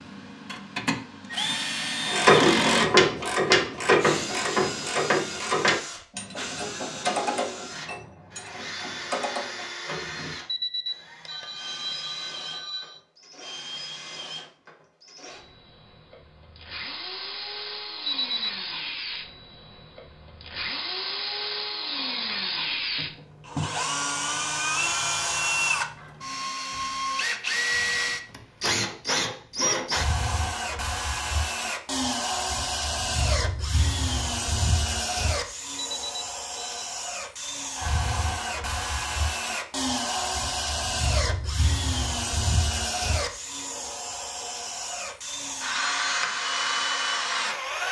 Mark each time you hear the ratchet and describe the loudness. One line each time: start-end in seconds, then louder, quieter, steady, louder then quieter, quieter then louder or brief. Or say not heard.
2.1-9.7 quieter.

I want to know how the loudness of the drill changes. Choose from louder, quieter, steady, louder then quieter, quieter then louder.
quieter then louder.